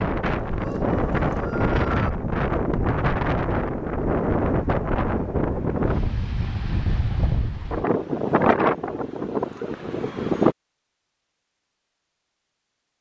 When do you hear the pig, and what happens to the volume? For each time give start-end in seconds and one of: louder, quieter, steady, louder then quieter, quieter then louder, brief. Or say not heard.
not heard.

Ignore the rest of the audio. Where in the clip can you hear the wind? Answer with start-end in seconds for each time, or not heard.
0.0-10.6.